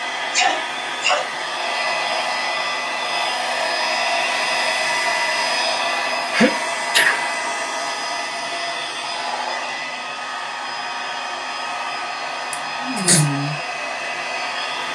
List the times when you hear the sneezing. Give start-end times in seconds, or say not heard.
0.3-1.3, 6.2-7.2, 12.5-13.2.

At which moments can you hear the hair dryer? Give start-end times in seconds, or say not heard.
0.0-14.9.